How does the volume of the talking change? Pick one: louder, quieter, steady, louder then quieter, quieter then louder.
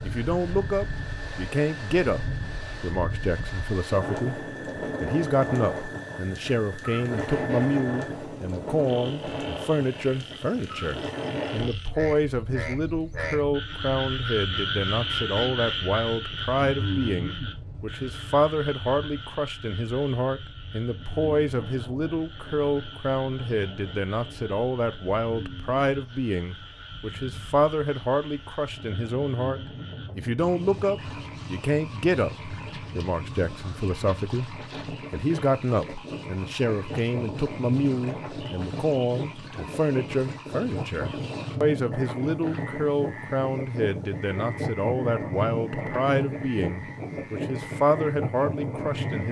steady.